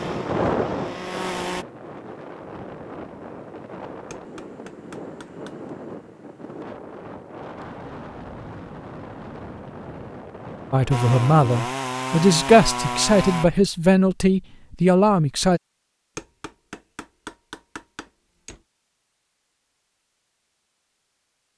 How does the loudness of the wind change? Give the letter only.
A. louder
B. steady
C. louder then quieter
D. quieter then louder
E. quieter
E.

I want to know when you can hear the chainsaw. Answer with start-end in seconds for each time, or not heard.
0.0-1.6, 10.9-13.4.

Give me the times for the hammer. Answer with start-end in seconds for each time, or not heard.
4.1-5.7, 16.1-18.6.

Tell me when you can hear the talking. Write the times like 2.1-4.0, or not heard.
10.7-15.6.